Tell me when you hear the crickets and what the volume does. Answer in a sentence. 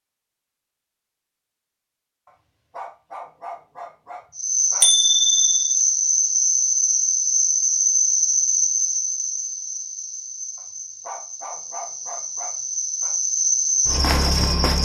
The crickets can be heard from 4.3 to 14.8 s, getting quieter then louder.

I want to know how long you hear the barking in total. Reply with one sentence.
You can hear the barking for 5 seconds altogether.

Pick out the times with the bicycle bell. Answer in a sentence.
The bicycle bell can be heard from 4.8 to 5.7 s.